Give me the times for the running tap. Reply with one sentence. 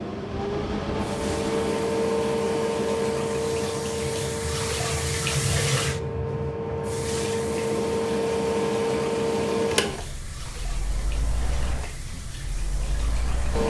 The running tap can be heard from 0.0 to 13.6 s.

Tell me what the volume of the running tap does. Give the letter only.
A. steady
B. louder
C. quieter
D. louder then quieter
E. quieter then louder
D.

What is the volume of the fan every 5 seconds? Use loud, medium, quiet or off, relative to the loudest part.
loud, loud, medium.